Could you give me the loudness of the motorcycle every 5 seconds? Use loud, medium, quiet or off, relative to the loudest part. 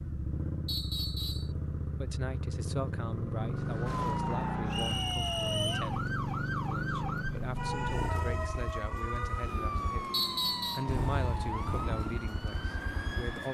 loud, loud, medium.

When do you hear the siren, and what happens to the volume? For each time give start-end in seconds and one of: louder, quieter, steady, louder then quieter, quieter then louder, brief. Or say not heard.
3.5-13.4 steady.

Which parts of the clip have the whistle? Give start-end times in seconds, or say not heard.
0.7-1.5, 4.7-5.9, 10.1-10.8.